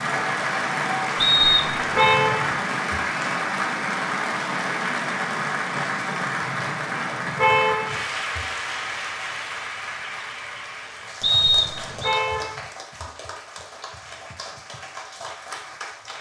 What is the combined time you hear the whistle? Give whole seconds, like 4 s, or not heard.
2 s.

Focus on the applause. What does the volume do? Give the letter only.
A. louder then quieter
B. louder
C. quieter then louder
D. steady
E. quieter
E.